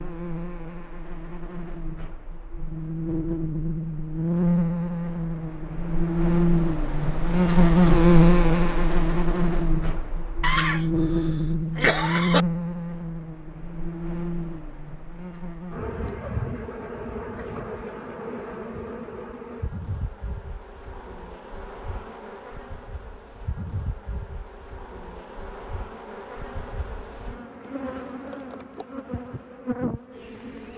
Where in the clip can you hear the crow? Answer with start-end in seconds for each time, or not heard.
not heard.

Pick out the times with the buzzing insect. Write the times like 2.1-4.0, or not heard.
0.0-30.7.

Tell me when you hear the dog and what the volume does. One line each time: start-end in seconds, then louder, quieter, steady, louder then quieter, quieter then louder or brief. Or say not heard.
not heard.